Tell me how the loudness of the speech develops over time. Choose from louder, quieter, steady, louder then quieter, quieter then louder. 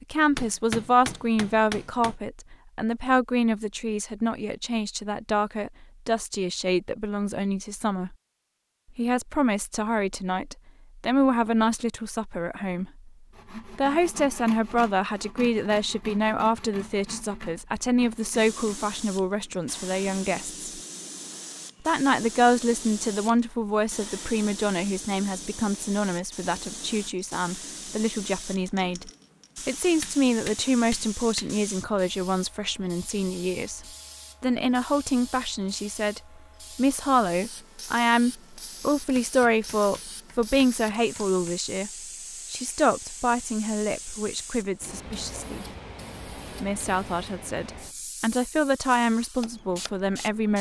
steady.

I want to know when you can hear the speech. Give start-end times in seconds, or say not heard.
0.0-8.2, 8.9-20.6, 21.9-41.9, 42.5-45.6, 46.6-50.5.